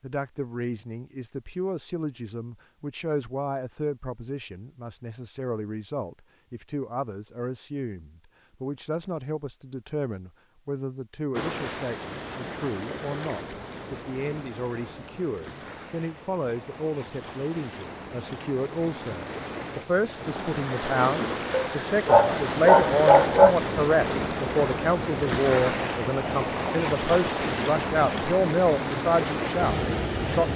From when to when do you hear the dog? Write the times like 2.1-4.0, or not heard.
21.5-23.6.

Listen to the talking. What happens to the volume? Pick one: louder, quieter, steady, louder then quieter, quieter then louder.
louder.